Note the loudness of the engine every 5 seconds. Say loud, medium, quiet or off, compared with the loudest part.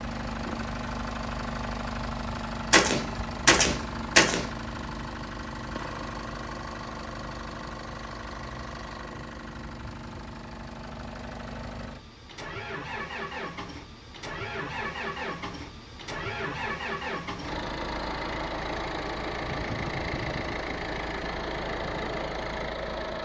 loud, medium, medium, loud, loud.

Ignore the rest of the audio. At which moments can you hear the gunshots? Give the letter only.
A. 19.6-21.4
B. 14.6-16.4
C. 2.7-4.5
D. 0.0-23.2
C.